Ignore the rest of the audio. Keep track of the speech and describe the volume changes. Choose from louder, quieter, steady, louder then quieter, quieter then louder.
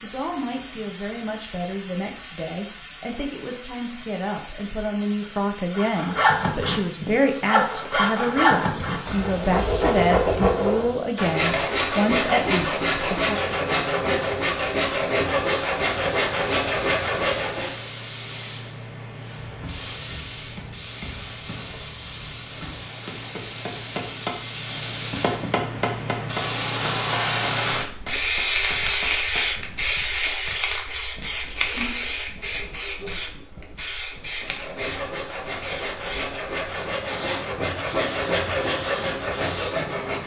louder.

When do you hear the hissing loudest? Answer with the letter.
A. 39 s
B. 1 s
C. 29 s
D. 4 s
C.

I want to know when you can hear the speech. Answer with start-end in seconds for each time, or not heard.
0.0-13.4.